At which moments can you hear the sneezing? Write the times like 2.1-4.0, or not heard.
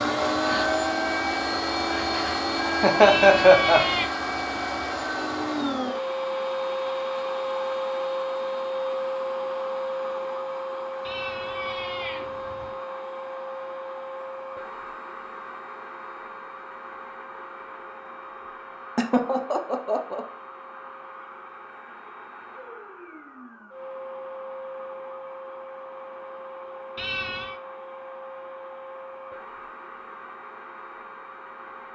not heard.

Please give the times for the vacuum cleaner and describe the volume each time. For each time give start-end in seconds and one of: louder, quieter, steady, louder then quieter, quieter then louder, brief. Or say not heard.
0.0-31.8 quieter.